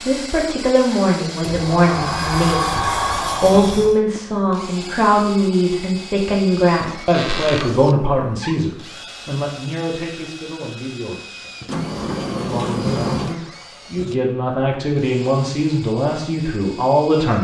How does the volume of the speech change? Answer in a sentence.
The loudness of the speech goes down, then up.